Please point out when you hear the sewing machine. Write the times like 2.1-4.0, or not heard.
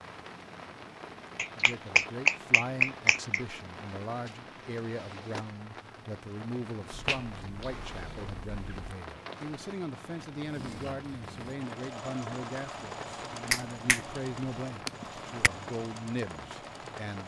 10.3-17.2.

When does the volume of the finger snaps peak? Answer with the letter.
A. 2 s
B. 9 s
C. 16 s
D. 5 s
A.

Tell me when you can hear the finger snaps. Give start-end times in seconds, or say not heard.
1.4-3.4, 6.9-8.9, 13.5-15.5.